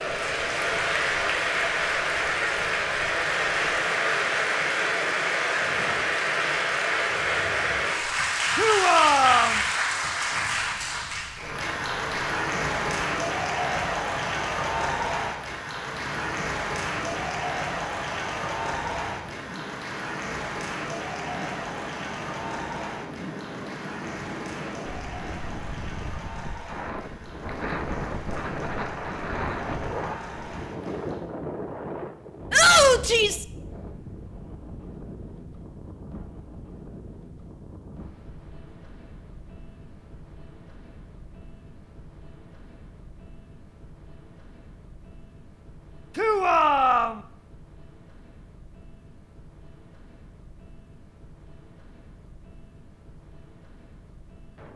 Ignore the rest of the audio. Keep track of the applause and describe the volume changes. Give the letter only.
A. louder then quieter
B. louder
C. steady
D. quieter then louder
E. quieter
E.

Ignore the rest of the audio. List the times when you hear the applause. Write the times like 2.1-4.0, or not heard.
0.0-31.2.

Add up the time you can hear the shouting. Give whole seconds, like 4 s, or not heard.
3 s.